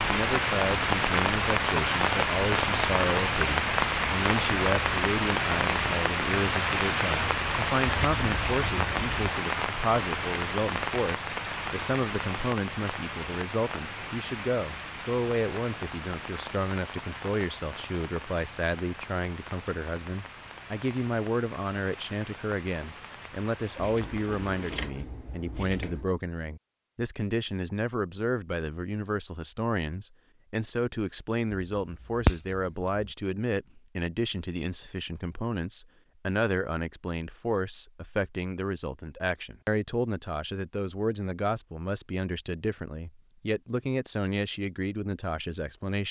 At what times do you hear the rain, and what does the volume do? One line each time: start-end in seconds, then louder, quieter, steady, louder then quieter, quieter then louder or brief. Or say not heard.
0.0-24.8 quieter.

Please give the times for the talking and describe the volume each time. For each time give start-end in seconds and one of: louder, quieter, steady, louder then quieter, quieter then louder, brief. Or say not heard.
0.0-46.0 steady.